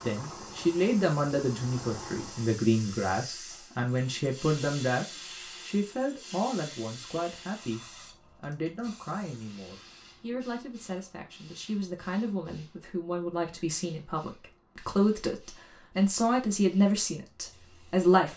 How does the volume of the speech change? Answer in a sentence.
The volume of the speech goes down, then up.